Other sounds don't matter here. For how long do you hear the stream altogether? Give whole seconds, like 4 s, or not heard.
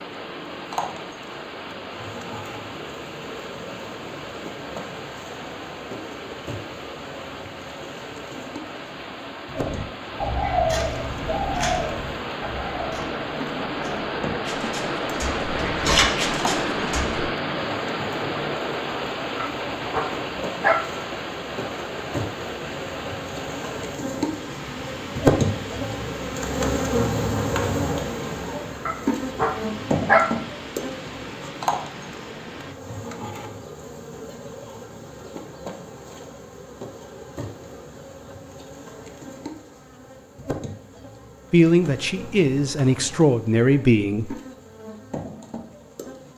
33 s.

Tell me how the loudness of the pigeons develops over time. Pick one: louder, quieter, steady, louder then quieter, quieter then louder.
quieter then louder.